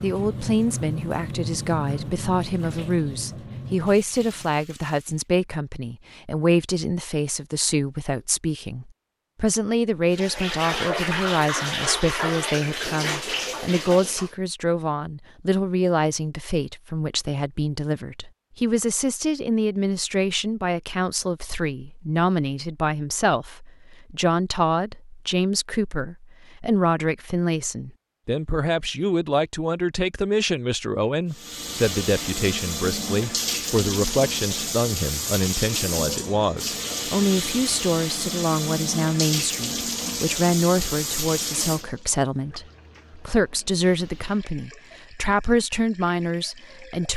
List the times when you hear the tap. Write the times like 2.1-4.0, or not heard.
0.0-5.2, 10.1-14.3, 31.3-47.1.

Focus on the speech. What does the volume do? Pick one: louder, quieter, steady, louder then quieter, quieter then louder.
steady.